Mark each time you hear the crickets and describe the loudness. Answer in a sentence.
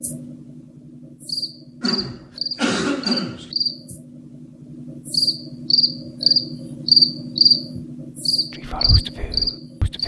The crickets can be heard from 0.0 to 10.0 s, getting louder then quieter.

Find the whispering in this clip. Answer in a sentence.
The whispering can be heard from 8.5 to 10.0 s.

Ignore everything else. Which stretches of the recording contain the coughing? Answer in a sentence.
The coughing can be heard from 1.8 to 3.5 s.